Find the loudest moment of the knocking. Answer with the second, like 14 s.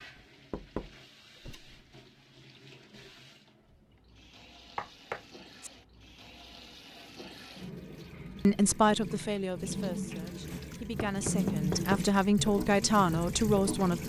12 s.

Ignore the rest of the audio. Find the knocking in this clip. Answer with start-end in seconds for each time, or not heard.
0.1-1.7, 4.8-5.7, 10.9-12.1.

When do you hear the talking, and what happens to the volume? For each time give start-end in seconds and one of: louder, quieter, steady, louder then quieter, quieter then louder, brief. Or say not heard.
8.4-14.0 quieter then louder.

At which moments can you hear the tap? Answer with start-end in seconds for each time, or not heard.
0.0-14.0.